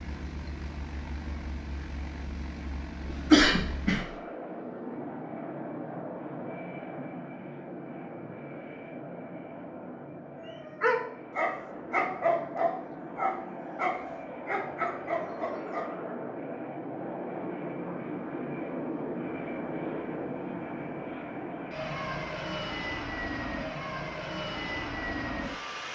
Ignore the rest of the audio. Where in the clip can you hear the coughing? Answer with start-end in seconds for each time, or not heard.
3.0-4.0.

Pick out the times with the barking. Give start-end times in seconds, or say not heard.
10.4-15.8.